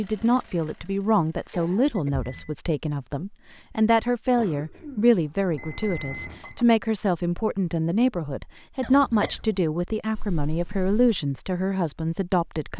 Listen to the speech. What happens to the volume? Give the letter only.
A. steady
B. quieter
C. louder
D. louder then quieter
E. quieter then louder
A.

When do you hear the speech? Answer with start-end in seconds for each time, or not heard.
0.0-12.7.